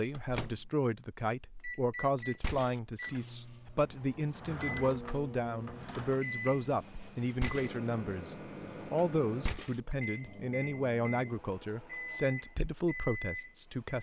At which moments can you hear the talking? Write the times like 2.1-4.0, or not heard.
0.0-13.9.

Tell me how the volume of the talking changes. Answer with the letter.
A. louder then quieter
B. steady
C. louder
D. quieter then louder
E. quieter
B.